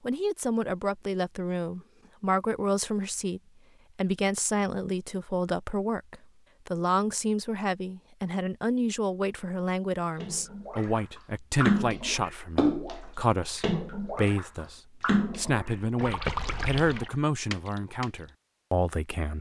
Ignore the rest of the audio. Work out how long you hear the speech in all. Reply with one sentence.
The speech can be heard for 19 seconds in total.